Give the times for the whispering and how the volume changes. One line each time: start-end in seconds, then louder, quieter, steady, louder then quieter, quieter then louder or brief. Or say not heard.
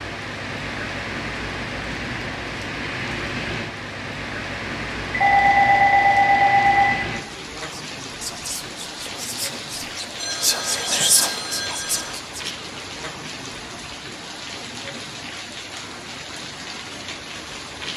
7.8-12.4 louder then quieter.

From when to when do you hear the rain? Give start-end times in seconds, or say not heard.
0.0-17.9.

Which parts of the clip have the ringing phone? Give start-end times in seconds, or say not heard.
5.1-6.9, 10.2-12.1.